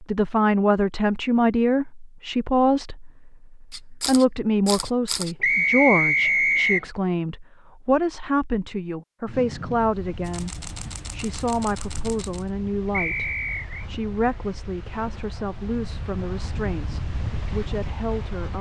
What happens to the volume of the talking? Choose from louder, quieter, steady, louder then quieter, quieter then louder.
quieter.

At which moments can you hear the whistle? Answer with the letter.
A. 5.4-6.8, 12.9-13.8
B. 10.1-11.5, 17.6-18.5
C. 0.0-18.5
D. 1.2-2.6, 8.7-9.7
A.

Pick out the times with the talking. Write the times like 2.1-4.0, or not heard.
0.0-18.5.